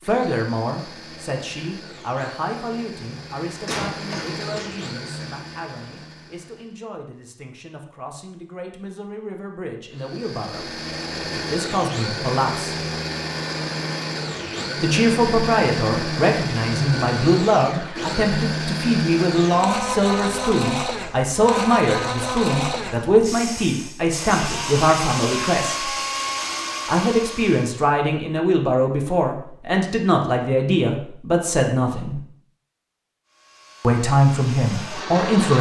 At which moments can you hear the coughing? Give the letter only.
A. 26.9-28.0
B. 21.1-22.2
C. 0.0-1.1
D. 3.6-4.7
D.